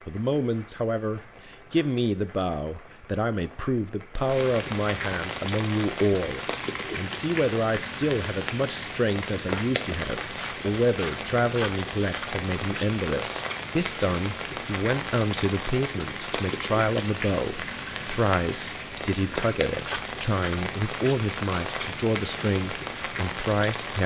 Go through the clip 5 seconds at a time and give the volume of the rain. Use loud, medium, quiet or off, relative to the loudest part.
medium, loud, loud, loud, loud.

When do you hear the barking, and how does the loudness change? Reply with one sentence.
The barking can't be heard in this clip.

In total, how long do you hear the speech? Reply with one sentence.
The speech can be heard for 24 seconds in total.